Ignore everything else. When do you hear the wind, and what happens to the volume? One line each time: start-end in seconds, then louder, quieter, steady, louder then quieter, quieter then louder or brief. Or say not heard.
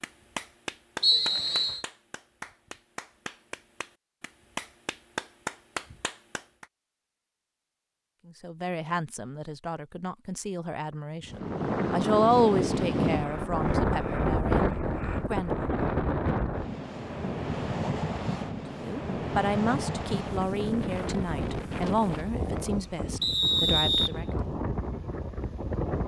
11.2-26.0 quieter.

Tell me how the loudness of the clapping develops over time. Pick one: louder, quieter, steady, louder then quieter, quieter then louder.
quieter then louder.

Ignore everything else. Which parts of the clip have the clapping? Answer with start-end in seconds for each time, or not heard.
0.0-6.7.